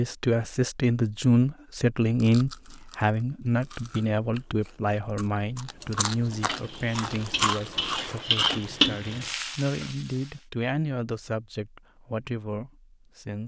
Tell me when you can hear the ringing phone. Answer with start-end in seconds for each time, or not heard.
not heard.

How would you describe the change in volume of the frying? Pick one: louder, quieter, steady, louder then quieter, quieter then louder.
louder then quieter.